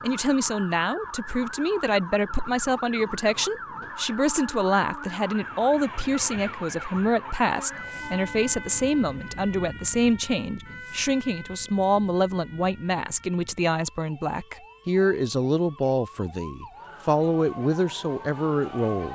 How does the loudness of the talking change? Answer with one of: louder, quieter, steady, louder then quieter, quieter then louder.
steady.